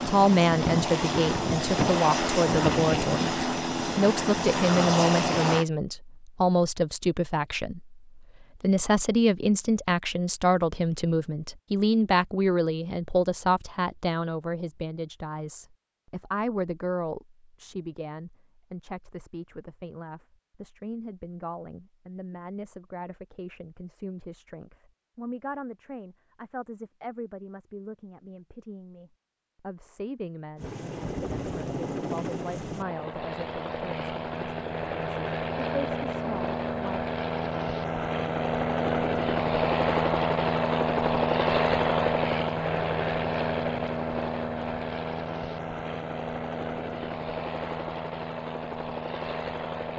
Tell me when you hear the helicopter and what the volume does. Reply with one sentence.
The helicopter can be heard from 0.0 to 5.7 s, at a steady volume; and from 30.6 to 49.9 s, getting louder then quieter.